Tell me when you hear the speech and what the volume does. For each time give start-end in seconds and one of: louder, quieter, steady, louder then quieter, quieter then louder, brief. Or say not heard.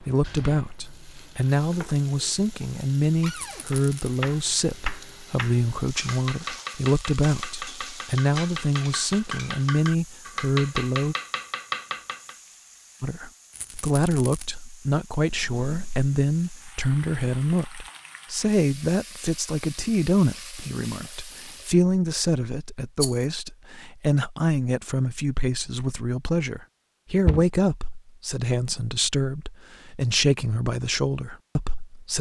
0.0-11.2 steady
13.0-32.1 steady.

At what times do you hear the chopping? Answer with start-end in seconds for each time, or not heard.
3.7-12.3.